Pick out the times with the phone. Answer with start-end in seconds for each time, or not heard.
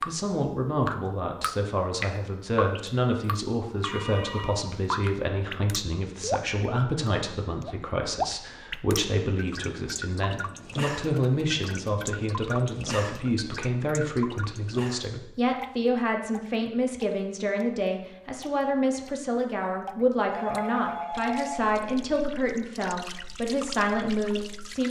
3.9-4.6, 11.2-11.9, 20.3-21.7.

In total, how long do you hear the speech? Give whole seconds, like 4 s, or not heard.
25 s.